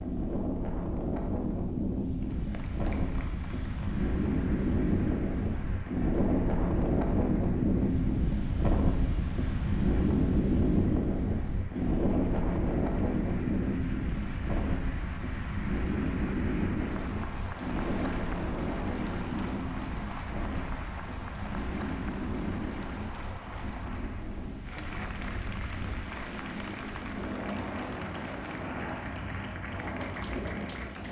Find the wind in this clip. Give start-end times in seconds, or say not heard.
0.0-31.0.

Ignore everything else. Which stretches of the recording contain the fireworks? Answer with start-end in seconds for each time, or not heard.
not heard.